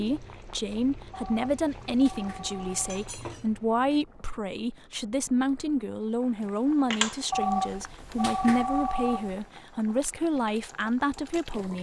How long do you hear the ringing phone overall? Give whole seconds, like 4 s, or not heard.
4 s.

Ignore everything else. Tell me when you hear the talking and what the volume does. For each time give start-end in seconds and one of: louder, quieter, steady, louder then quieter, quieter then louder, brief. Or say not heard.
0.0-11.7 steady.